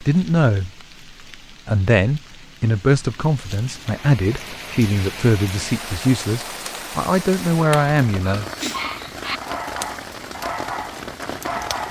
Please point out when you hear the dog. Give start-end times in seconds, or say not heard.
7.7-11.8.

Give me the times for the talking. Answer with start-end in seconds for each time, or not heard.
0.0-0.7, 1.6-8.4.